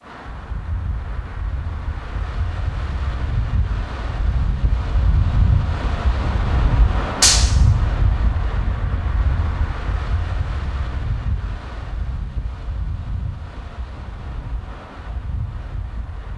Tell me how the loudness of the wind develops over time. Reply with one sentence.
The volume of the wind goes up, then down.